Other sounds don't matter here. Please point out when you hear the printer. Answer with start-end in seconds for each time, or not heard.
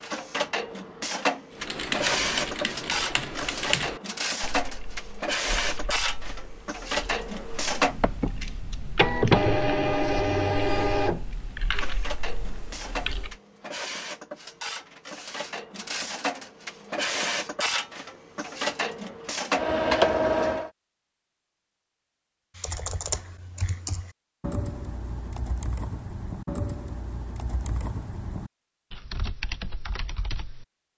0.0-20.7.